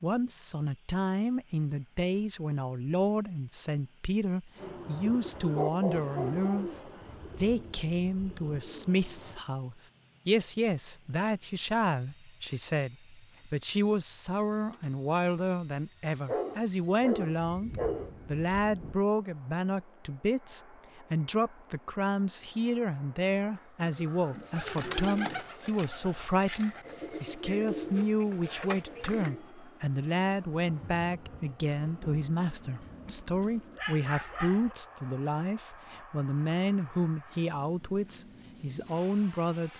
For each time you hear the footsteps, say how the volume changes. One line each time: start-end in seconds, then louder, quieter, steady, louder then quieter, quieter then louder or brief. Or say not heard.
not heard.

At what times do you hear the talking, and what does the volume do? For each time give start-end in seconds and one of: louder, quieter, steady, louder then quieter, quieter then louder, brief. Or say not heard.
0.0-39.7 steady.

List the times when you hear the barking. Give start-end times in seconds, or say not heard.
5.5-6.7, 16.2-18.1, 32.8-34.8.